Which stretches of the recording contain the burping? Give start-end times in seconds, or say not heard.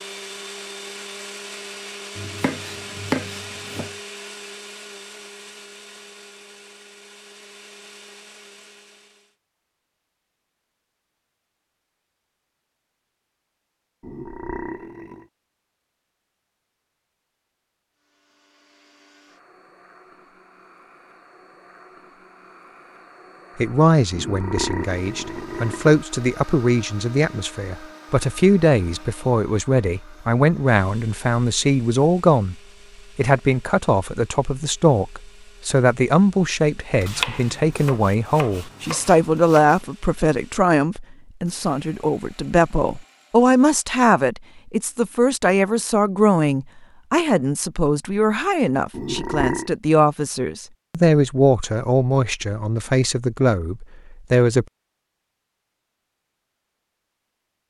14.0-15.2, 24.1-26.0, 48.9-49.7.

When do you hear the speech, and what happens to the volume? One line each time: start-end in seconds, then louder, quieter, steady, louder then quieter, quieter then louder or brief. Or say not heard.
23.6-32.5 louder
33.1-54.6 steady.